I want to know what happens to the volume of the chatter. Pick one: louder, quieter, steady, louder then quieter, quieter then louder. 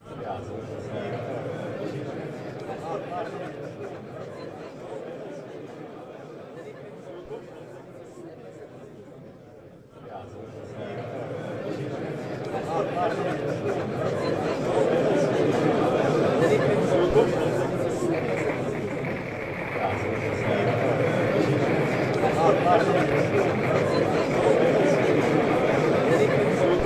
quieter then louder.